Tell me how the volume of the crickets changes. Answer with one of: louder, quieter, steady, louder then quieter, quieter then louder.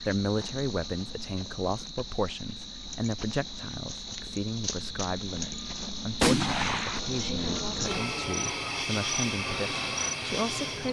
louder.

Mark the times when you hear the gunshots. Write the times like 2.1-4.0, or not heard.
6.2-7.0.